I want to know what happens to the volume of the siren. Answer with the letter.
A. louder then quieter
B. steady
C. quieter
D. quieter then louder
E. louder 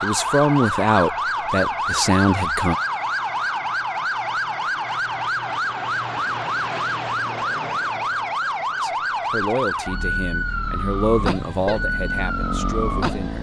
B.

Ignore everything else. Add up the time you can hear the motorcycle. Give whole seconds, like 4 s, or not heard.
2 s.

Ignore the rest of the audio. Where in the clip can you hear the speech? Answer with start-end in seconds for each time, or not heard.
0.0-2.8, 8.8-13.3.